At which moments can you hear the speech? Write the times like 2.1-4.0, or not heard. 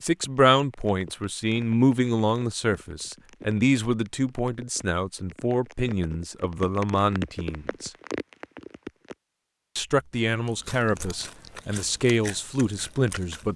0.0-7.9, 9.8-13.5.